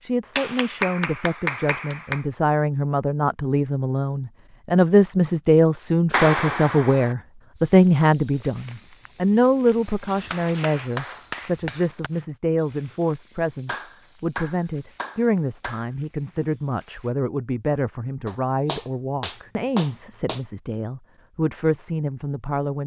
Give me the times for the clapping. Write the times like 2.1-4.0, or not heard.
0.3-2.2, 6.1-7.2, 10.1-12.1, 13.7-15.9, 18.2-20.4.